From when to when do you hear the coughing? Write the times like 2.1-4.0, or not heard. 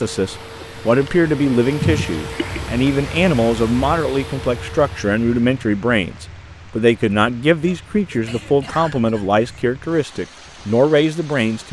1.8-2.6, 7.7-9.4.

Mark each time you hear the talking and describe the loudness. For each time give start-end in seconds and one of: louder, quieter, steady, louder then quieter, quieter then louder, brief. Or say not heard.
0.0-11.6 steady.